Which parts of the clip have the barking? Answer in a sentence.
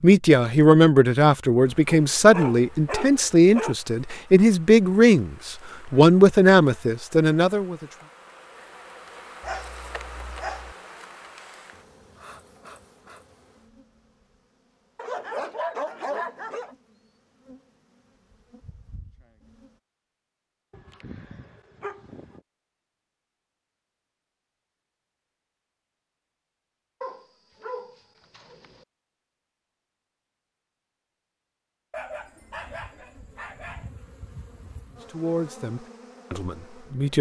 You can hear the barking from 1.9 to 3.8 s, from 9.4 to 10.8 s, from 14.9 to 16.8 s, from 20.7 to 22.4 s, from 27.0 to 28.9 s and from 31.9 to 33.9 s.